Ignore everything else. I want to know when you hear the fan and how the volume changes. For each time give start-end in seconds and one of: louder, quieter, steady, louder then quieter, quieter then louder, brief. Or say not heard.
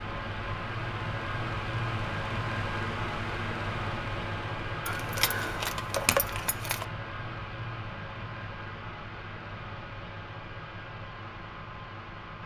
0.0-12.4 quieter.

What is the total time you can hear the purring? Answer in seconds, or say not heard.
not heard.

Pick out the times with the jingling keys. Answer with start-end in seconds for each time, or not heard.
4.8-6.8.